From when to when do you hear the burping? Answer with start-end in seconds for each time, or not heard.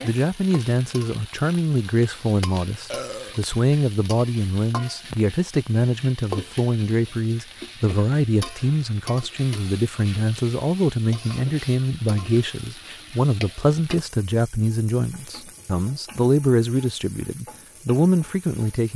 2.9-3.4.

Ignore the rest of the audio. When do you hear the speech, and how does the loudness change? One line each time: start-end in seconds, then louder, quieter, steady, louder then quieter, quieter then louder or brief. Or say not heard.
0.0-18.9 steady.